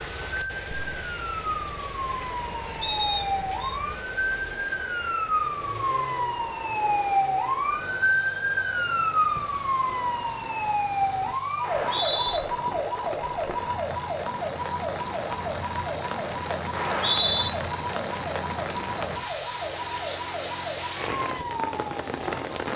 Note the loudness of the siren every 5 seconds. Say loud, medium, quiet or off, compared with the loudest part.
medium, loud, loud, medium, medium.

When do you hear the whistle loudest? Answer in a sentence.
The loudest moment of the whistle is at 17 seconds.